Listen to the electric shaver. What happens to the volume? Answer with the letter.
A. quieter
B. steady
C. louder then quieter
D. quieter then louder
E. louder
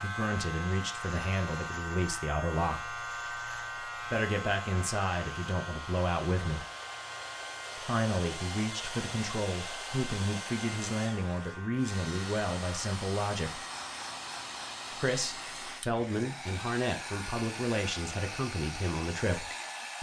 A.